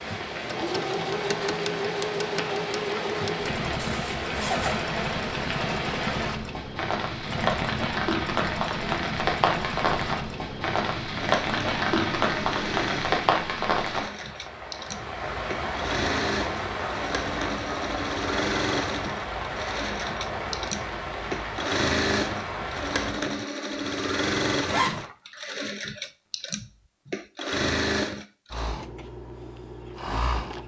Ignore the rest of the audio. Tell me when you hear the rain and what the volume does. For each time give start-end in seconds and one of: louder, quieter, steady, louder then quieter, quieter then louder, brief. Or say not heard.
0.0-23.2 louder then quieter.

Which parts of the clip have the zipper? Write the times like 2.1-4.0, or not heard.
3.8-4.8, 24.6-25.1.